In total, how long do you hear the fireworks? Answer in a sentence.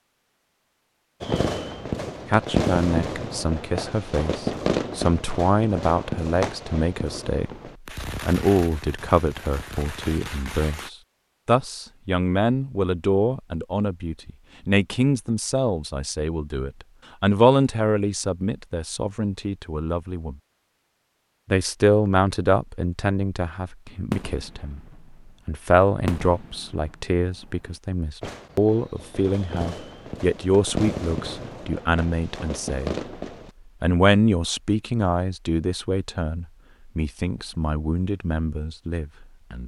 You can hear the fireworks for 19 seconds altogether.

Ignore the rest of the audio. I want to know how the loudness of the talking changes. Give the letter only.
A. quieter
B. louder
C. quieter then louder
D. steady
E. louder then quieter
D.